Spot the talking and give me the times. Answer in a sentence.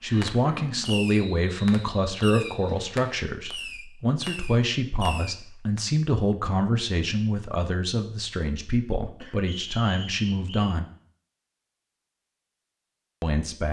You can hear the talking from 0.0 to 10.8 s and from 13.2 to 13.6 s.